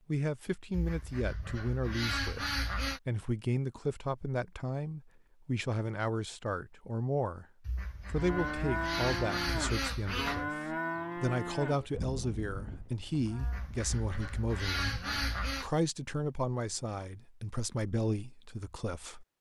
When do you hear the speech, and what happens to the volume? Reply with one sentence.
The speech can be heard from 0.1 to 19.2 s, at a steady volume.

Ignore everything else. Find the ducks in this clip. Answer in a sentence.
You can hear the ducks from 0.7 to 3.0 s, from 7.7 to 10.4 s and from 13.3 to 15.7 s.